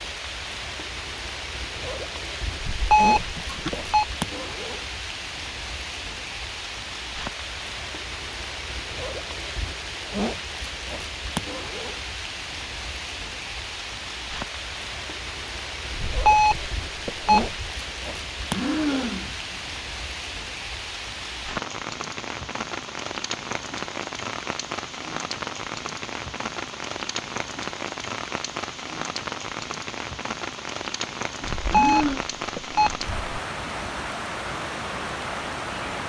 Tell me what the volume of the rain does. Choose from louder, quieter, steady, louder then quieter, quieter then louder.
steady.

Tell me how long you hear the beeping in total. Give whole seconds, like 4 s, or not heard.
5 s.